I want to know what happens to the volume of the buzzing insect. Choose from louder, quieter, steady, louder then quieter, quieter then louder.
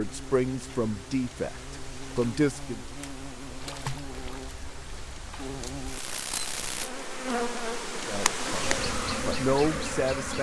louder.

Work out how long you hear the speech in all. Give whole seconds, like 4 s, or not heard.
5 s.